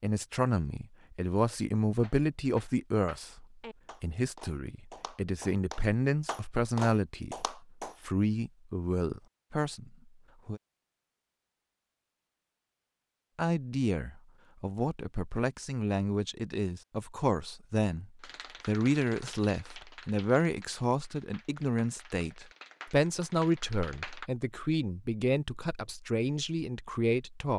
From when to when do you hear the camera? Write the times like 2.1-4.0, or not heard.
not heard.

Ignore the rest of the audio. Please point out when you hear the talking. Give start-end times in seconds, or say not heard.
0.0-10.6, 13.3-27.5.